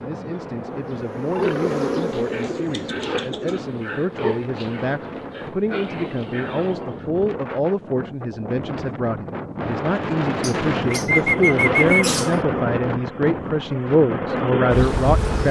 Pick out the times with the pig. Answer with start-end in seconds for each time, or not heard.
1.3-7.1.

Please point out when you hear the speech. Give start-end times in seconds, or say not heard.
0.0-15.4.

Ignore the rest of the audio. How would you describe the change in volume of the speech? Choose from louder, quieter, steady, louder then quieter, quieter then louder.
louder.